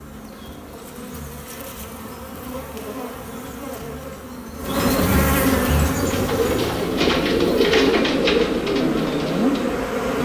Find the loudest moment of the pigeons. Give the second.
8 s.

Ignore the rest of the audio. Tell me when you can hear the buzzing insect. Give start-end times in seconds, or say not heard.
0.0-10.2.